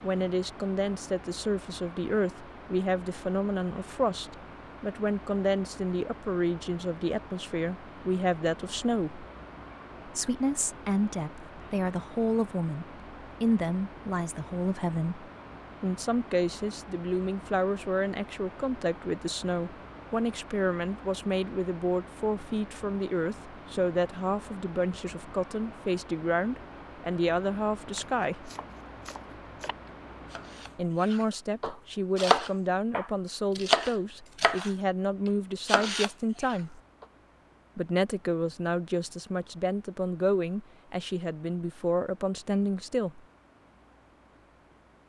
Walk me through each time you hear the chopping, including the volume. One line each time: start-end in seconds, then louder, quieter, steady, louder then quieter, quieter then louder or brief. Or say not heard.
27.9-34.7 louder
35.6-37.0 brief.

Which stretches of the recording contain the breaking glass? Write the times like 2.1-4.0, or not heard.
not heard.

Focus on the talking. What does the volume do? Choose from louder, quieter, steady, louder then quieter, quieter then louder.
steady.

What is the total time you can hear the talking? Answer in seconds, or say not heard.
39 s.